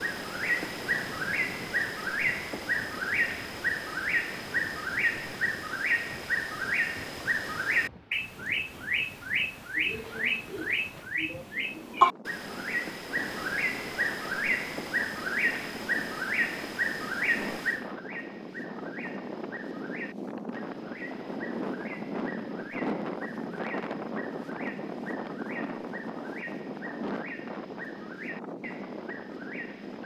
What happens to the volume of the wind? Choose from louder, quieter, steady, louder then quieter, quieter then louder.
louder.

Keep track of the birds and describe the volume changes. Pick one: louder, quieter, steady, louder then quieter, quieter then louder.
quieter.